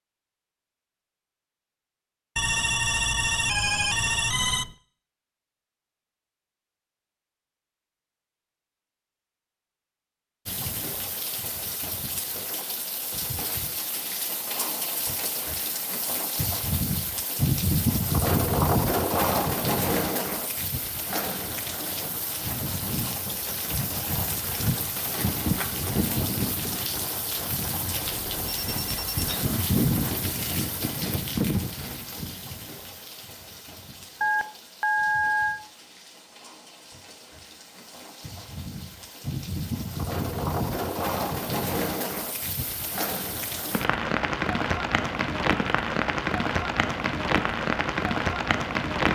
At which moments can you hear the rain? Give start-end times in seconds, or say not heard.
10.4-49.0.